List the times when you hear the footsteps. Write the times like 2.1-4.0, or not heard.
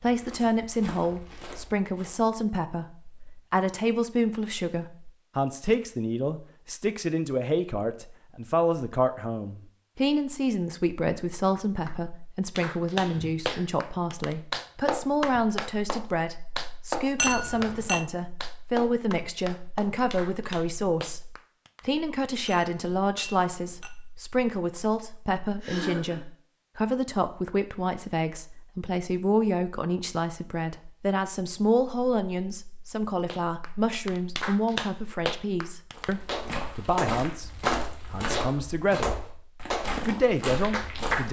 0.0-2.3, 35.9-41.2.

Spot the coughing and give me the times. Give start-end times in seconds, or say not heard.
12.9-13.7, 25.6-26.2.